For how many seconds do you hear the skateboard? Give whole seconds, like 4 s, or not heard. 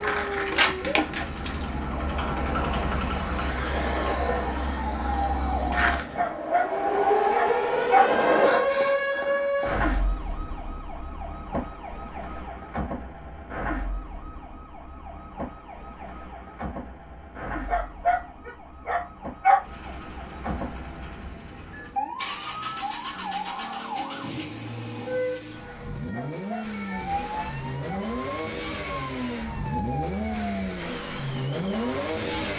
9 s.